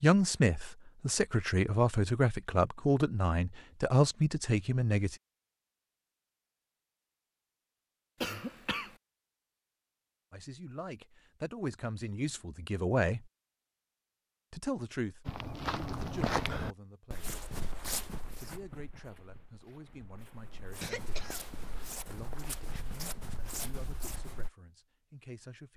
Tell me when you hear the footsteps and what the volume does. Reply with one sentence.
You can hear the footsteps from 15.2 to 24.5 s, getting quieter then louder.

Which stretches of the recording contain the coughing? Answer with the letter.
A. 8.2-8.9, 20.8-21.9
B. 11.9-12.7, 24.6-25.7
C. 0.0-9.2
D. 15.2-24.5
A.